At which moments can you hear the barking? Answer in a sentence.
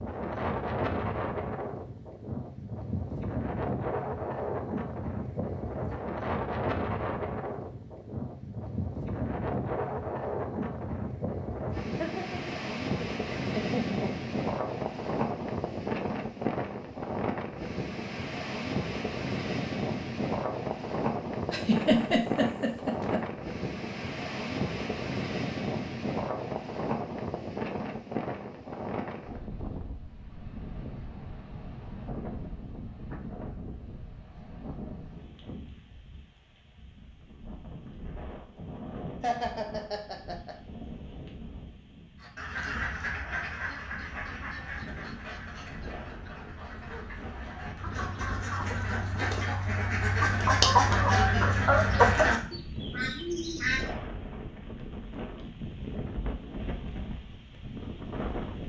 The barking can't be heard in this clip.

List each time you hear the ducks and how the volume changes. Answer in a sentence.
You can hear the ducks from 42.2 to 53.8 s, getting quieter then louder.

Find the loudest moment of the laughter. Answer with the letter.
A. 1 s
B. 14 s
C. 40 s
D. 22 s
D.